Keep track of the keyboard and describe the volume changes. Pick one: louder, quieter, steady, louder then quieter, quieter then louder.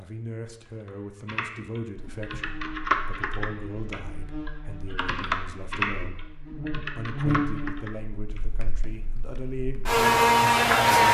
louder then quieter.